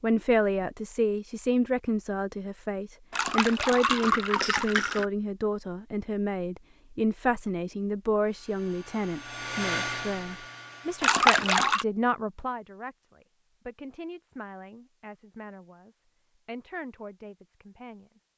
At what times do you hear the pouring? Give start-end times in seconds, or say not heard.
3.1-5.0, 11.0-11.8.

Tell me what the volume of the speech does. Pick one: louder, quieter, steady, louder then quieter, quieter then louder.
quieter.